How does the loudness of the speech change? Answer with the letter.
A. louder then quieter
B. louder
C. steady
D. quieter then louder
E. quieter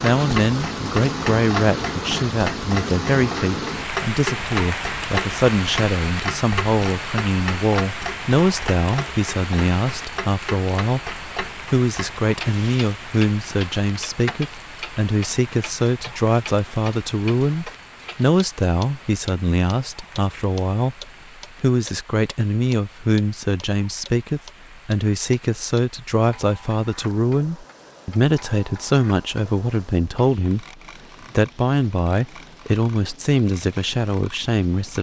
C.